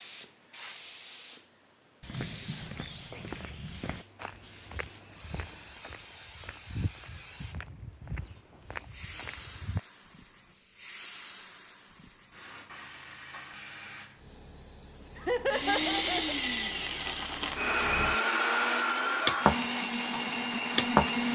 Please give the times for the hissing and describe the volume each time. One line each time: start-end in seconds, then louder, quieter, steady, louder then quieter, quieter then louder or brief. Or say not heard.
0.0-21.3 louder.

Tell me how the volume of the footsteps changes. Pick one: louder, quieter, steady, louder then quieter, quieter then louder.
quieter then louder.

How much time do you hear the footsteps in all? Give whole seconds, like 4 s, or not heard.
8 s.